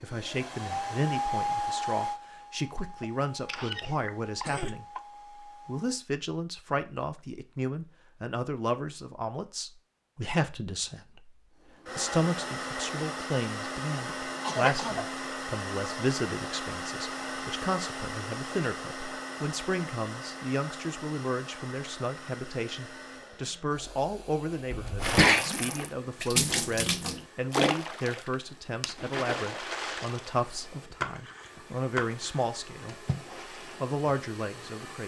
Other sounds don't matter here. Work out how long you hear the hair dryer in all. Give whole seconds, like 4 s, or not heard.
29 s.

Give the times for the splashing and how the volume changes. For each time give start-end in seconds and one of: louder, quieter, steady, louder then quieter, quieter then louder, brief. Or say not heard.
25.0-33.8 quieter.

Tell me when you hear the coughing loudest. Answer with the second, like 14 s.
25 s.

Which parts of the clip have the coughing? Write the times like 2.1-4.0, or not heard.
3.0-5.0, 14.4-15.1, 24.7-25.4.